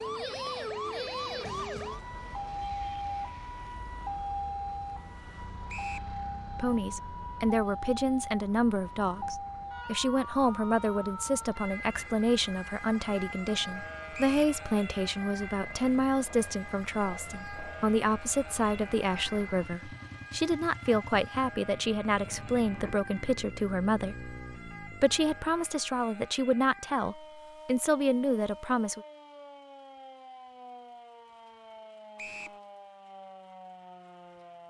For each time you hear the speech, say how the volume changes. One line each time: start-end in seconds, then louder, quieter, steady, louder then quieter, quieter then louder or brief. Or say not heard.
6.5-29.0 steady.